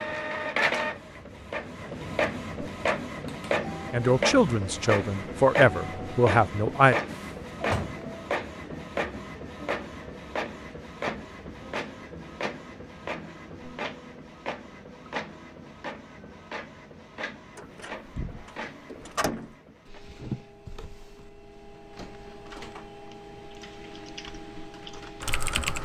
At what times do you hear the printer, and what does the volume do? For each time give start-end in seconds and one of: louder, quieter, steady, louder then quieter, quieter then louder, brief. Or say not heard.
0.0-25.7 quieter.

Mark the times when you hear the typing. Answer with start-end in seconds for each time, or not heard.
23.5-25.7.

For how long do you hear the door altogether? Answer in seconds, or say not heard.
3 s.